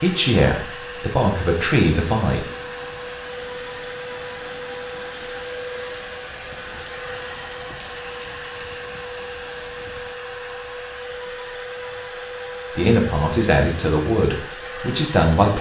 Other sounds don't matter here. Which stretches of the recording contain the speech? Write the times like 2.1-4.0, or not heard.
0.0-2.4, 12.8-15.5.